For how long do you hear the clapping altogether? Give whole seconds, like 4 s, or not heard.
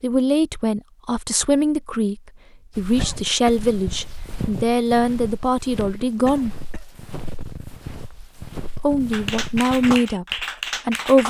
2 s.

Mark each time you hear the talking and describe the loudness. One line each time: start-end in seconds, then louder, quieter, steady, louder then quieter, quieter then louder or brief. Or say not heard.
0.0-6.5 steady
8.8-11.2 brief.